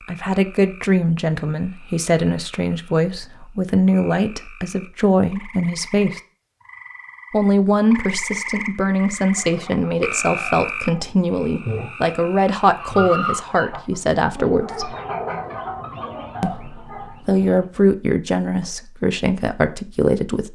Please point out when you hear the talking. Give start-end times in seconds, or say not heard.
0.1-6.2, 7.3-14.9, 16.4-20.5.